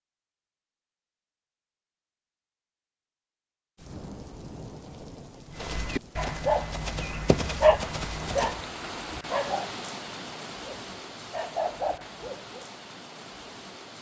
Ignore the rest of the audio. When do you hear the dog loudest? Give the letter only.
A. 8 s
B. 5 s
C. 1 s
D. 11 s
A.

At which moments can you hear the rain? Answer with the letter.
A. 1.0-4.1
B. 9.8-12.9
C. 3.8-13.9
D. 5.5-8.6
C.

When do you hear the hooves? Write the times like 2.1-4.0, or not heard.
5.5-8.6.